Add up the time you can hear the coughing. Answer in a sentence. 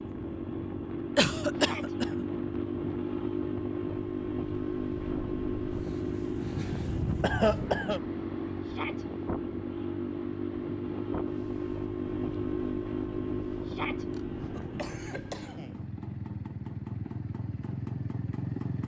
The coughing can be heard for 3 seconds in total.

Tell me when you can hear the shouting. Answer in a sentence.
You can hear the shouting from 1.5 to 1.9 s, from 8.6 to 9.1 s and from 13.6 to 14.1 s.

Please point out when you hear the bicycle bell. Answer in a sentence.
The bicycle bell can't be heard in this clip.